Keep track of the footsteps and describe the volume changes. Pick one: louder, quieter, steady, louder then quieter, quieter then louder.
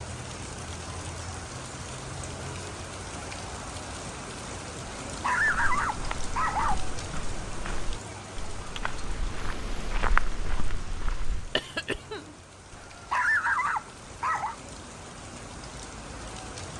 louder.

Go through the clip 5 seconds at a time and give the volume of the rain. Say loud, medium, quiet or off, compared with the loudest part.
loud, loud, medium, loud.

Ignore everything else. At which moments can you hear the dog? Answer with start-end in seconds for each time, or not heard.
5.0-6.8, 12.7-14.6.